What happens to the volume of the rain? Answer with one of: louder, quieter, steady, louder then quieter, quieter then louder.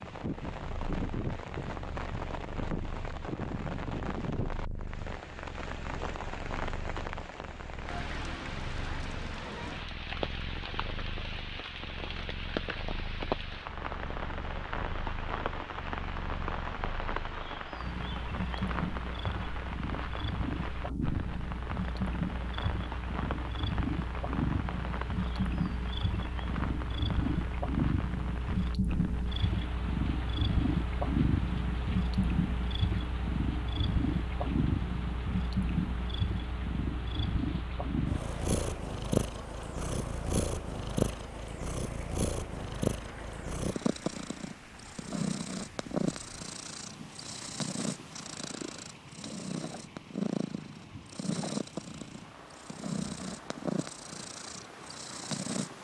quieter.